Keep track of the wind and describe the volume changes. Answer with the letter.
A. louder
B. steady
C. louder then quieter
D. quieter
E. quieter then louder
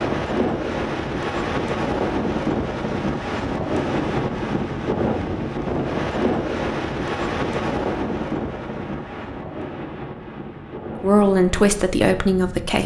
D.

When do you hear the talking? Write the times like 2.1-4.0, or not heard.
11.0-12.8.